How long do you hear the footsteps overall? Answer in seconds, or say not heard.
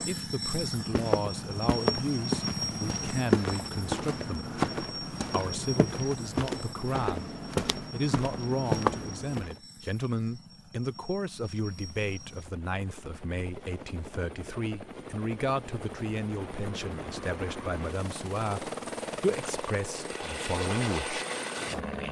9 s.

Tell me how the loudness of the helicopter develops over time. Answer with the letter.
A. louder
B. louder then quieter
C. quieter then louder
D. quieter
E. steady
C.